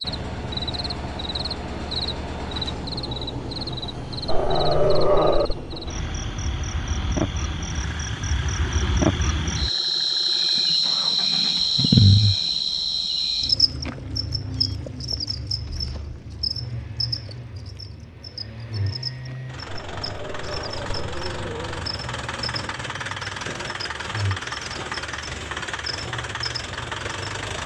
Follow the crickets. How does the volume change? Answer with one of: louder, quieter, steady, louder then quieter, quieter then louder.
louder then quieter.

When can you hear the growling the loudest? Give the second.
5 s.